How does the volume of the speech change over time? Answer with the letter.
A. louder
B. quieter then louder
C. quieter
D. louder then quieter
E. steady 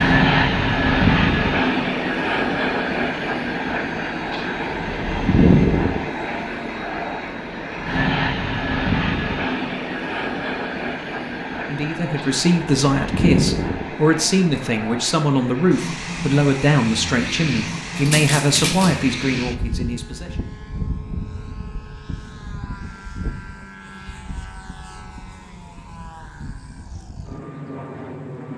E.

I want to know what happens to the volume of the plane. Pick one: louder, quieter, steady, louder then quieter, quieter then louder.
quieter.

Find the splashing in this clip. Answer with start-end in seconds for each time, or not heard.
17.9-19.0.